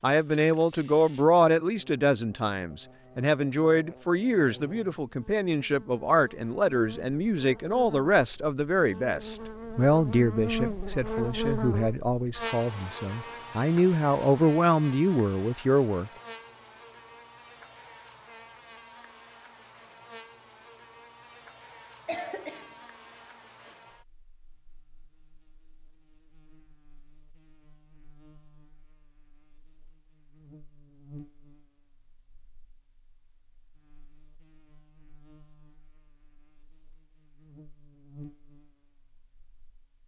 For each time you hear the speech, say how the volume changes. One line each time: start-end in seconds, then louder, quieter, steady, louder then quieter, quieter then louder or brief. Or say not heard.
0.0-16.1 steady.